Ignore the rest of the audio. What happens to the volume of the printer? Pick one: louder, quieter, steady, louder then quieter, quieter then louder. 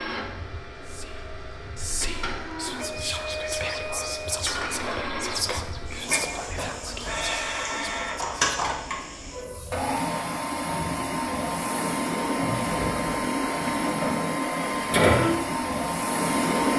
louder.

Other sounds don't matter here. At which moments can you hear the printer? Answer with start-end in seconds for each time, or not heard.
0.0-16.7.